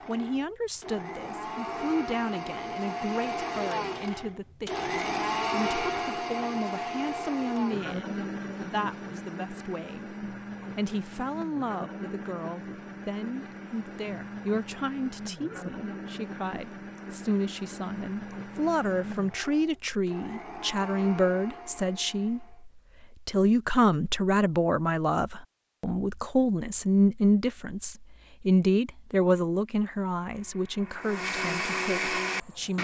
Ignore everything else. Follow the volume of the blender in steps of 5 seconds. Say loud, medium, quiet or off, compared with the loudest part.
loud, loud, medium, medium, medium, off, loud.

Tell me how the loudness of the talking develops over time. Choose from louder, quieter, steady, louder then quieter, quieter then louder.
louder.